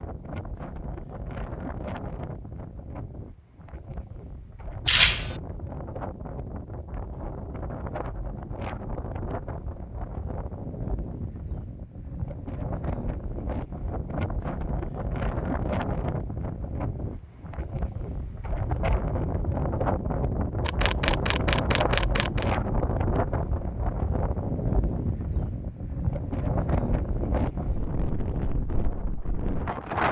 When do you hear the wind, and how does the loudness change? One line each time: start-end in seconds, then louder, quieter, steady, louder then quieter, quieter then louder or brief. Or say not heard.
0.0-30.0 louder.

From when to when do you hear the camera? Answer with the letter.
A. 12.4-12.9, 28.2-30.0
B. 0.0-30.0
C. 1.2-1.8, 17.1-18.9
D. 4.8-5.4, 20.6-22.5
D.